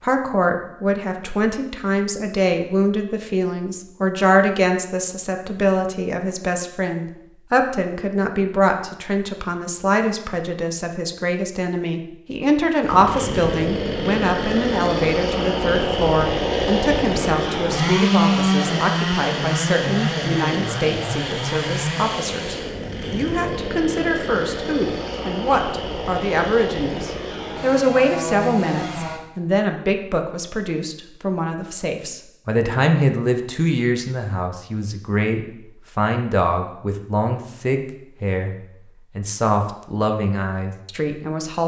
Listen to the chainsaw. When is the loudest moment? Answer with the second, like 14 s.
18 s.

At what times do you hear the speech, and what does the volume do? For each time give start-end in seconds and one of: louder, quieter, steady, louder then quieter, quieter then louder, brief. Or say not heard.
0.0-38.5 steady
39.1-41.6 brief.